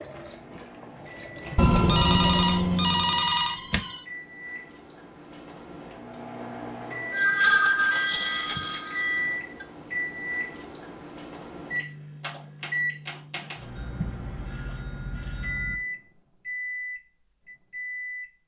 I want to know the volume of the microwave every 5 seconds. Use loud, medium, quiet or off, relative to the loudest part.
medium, loud, loud, loud.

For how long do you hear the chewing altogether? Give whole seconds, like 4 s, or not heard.
not heard.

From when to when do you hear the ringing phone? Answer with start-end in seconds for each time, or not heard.
1.6-4.0, 7.1-9.7, 13.8-15.8.